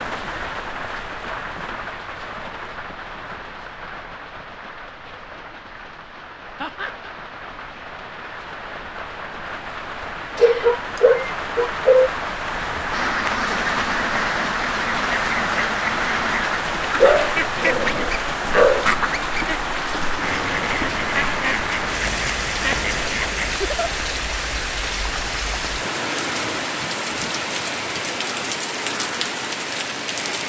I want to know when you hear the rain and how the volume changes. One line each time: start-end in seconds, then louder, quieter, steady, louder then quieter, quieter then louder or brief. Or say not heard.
0.0-30.4 louder.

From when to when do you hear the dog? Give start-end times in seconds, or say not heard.
10.3-12.1, 17.0-18.9.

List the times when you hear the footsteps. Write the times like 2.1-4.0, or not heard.
not heard.